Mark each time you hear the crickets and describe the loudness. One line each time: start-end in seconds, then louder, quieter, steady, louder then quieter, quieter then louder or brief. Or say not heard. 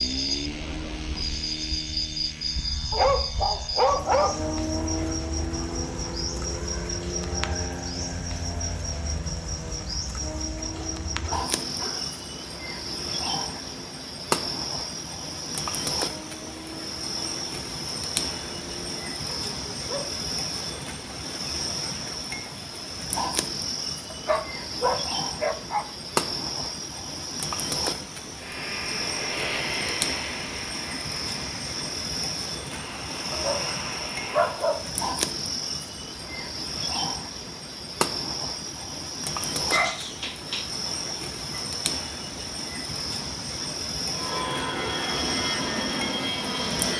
0.0-46.9 steady.